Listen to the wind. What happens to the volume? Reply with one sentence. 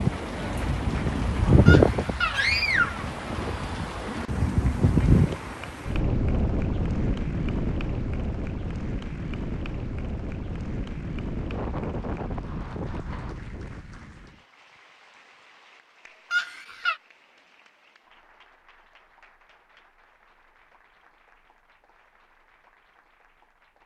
The volume of the wind goes down.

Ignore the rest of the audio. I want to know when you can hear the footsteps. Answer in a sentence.
You can't hear the footsteps here.